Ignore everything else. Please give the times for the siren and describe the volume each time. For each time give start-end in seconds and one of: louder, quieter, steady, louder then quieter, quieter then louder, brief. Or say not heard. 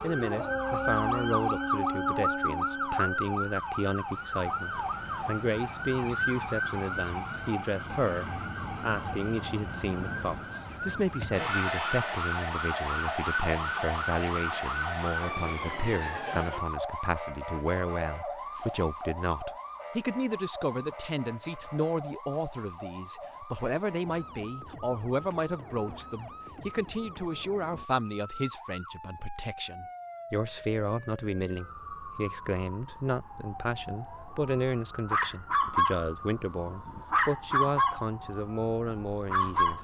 0.0-39.8 quieter.